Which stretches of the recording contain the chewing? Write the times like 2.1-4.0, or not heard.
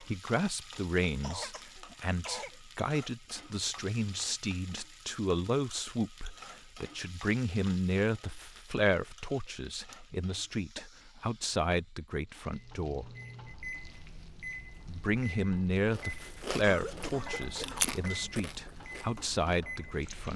15.9-20.3.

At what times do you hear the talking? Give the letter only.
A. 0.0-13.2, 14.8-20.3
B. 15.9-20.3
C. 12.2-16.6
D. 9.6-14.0
A.